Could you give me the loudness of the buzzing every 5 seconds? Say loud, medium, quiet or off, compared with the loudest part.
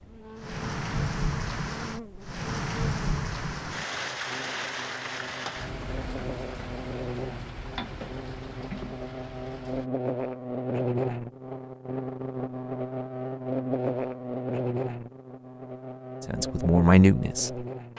quiet, medium, loud, medium.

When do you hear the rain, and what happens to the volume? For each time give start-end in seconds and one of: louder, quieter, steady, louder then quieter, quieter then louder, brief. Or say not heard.
0.0-9.9 quieter.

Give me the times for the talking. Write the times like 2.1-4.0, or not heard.
16.2-17.6.